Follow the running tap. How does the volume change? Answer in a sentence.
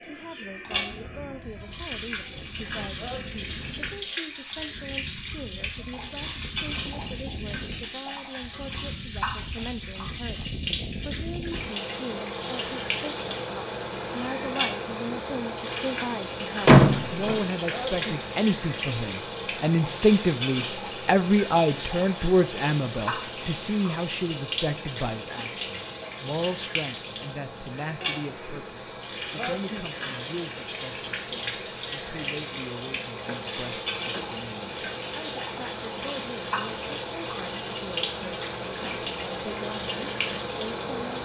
The loudness of the running tap stays about the same.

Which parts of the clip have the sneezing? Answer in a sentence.
You can hear the sneezing from 3.0 to 3.5 s, from 17.6 to 18.1 s and from 29.4 to 29.9 s.